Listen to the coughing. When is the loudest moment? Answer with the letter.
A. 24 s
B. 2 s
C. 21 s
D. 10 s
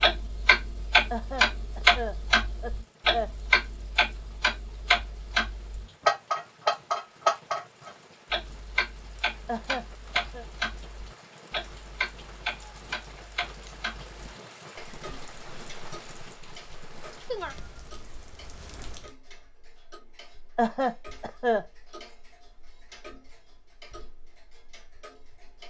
C.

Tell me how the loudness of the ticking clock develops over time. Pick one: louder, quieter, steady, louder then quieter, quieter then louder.
quieter.